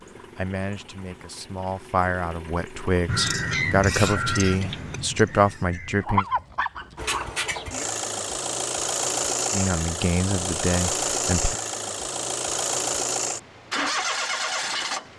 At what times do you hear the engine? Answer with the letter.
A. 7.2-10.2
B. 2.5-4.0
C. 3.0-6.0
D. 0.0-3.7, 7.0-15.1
D.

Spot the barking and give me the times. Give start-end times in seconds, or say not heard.
6.0-7.5.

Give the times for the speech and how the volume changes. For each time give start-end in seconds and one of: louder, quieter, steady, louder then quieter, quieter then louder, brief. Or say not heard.
0.3-6.2 louder
9.5-11.6 brief.